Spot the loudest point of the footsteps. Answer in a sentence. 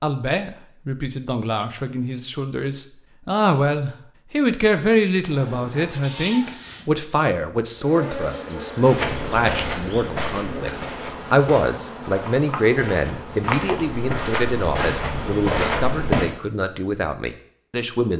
The volume of the footsteps peaks at 16 seconds.